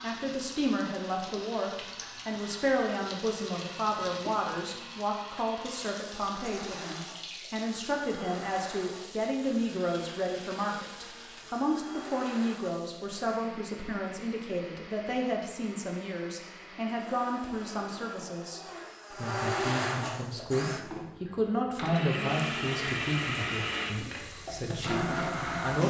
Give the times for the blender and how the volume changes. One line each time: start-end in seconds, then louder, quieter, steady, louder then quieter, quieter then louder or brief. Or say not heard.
0.0-25.8 louder.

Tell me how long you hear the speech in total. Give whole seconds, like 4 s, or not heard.
26 s.